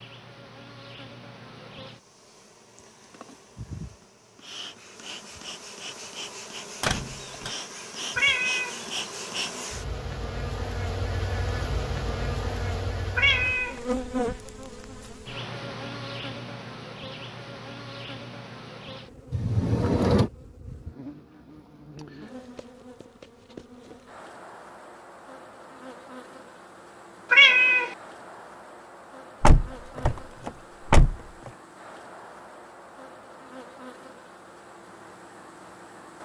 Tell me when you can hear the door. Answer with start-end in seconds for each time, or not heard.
6.8-7.5, 19.3-20.3, 29.4-31.1.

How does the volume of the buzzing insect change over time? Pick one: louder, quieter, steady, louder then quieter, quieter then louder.
louder then quieter.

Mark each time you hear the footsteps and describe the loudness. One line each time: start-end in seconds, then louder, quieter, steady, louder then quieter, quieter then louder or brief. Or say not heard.
not heard.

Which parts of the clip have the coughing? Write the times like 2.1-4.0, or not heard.
not heard.